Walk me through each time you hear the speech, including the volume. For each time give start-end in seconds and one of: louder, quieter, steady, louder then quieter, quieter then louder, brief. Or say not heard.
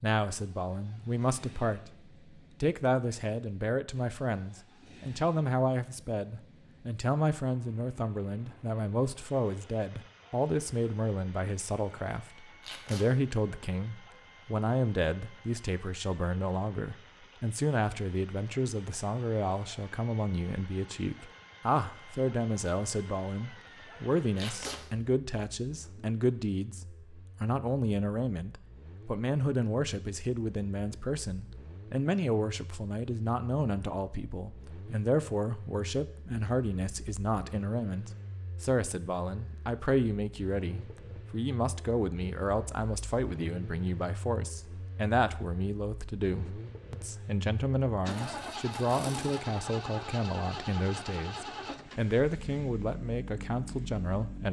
0.0-1.9 brief
2.6-54.4 steady.